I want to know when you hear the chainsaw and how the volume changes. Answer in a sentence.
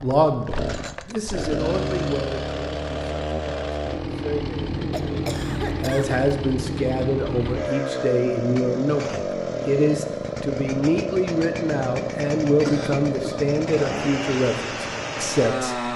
The chainsaw can be heard from 0.0 to 15.9 s, at a steady volume.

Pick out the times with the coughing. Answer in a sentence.
You can hear the coughing from 4.9 to 6.2 s and from 12.6 to 13.5 s.